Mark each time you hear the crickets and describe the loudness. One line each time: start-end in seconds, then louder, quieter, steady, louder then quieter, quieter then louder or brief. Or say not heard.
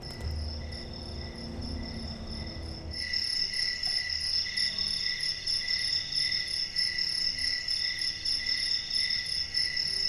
0.0-10.0 louder.